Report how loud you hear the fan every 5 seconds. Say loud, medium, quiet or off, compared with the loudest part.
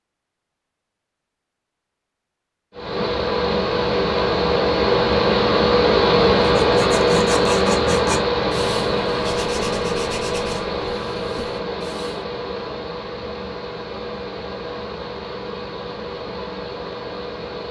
loud, loud, medium, quiet.